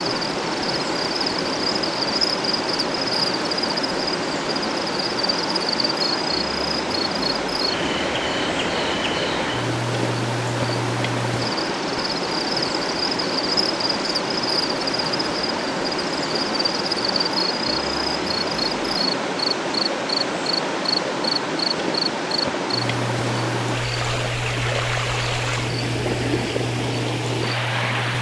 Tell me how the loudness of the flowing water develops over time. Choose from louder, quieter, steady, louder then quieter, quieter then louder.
steady.